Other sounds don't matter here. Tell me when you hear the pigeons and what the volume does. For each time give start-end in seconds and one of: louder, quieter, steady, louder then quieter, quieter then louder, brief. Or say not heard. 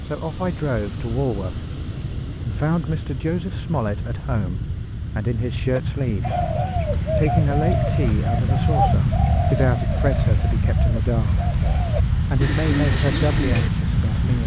5.7-13.7 quieter then louder.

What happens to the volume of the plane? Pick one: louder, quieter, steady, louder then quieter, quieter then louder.
louder.